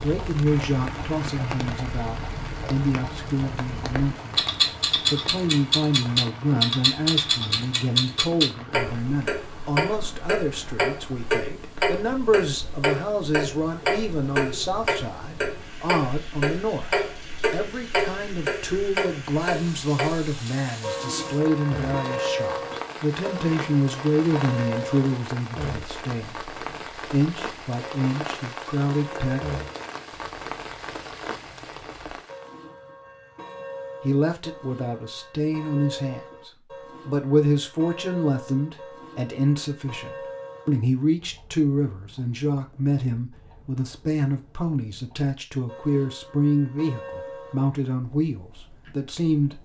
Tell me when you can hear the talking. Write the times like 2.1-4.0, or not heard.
0.0-16.9, 17.5-29.4, 34.0-49.6.